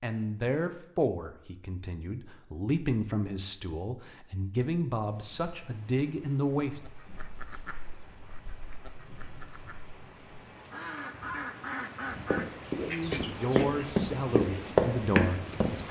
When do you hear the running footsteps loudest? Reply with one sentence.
The volume of the running footsteps peaks at 15 seconds.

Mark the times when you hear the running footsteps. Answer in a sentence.
You can hear the running footsteps from 12.3 to 15.8 s.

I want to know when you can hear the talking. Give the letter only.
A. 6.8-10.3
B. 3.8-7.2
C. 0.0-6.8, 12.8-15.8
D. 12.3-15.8
C.